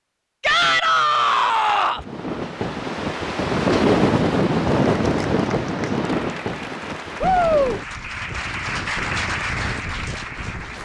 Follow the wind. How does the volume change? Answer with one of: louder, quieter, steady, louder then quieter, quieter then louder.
quieter.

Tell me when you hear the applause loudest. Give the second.
9 s.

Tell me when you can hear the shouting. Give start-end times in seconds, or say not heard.
0.4-2.0, 7.2-7.8.